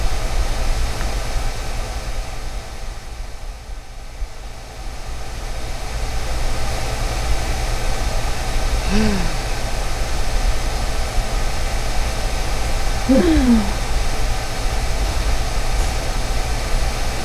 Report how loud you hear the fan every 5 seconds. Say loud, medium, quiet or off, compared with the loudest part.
medium, loud, loud, loud.